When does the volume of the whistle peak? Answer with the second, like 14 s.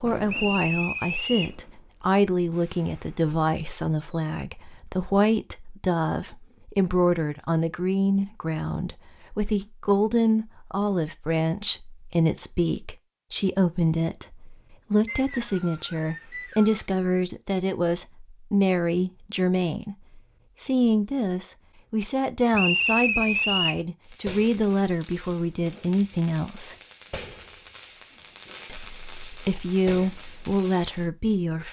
23 s.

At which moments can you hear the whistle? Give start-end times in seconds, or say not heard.
0.2-1.6, 15.1-16.9, 22.5-23.8.